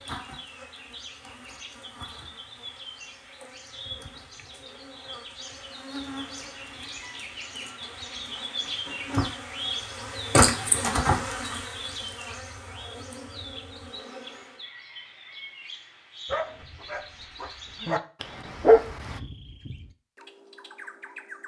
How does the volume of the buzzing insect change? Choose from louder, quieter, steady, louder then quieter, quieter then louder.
louder then quieter.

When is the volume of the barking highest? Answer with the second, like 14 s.
19 s.